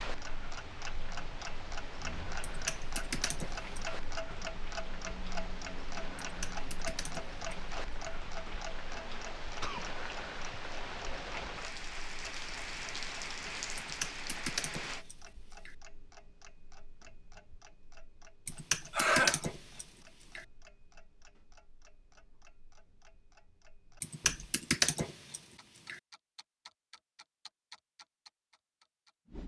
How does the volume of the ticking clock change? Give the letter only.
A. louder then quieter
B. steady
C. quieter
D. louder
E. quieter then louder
C.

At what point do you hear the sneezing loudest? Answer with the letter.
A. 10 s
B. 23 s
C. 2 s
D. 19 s
D.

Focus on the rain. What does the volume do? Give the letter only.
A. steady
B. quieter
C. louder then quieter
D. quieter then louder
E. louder
E.